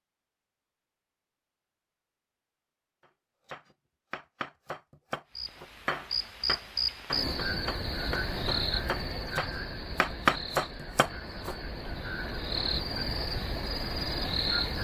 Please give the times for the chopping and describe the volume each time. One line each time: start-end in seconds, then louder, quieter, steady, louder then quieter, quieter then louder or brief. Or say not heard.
3.5-11.9 louder.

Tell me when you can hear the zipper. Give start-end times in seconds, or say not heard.
not heard.